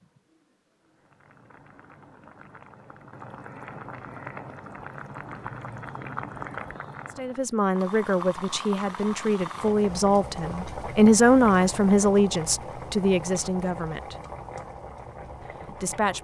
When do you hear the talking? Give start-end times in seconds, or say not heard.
7.2-14.2, 15.7-16.1.